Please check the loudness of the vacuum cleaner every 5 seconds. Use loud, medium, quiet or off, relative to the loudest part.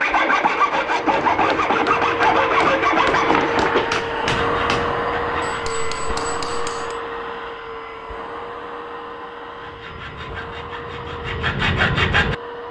loud, loud, medium.